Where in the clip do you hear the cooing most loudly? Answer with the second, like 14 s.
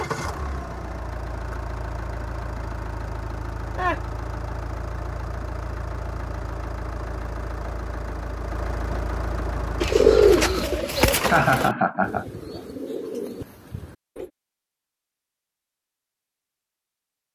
10 s.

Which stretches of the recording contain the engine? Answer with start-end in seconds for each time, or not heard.
0.0-10.8.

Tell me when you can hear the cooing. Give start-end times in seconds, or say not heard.
9.8-14.3.